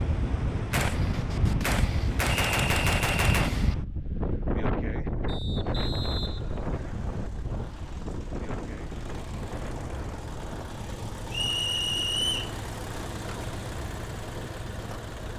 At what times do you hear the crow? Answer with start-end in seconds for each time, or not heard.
not heard.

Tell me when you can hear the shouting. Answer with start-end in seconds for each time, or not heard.
not heard.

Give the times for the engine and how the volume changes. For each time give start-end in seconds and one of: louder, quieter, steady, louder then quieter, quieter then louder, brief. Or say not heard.
5.7-15.3 louder.